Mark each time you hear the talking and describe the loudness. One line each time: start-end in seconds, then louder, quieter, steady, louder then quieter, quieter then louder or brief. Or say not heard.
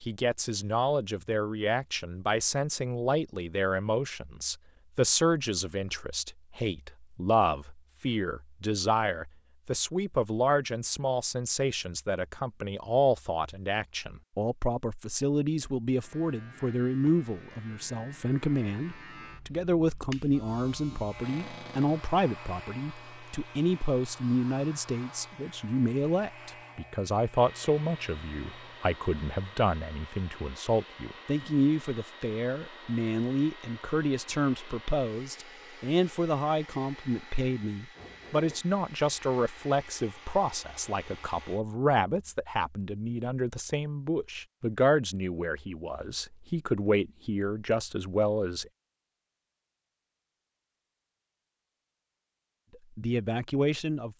0.0-48.6 steady
53.0-54.1 brief.